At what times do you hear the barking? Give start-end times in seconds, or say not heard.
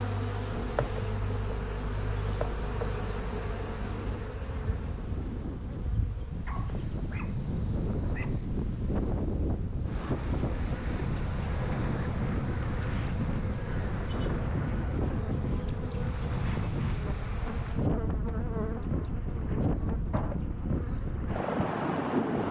6.5-8.4.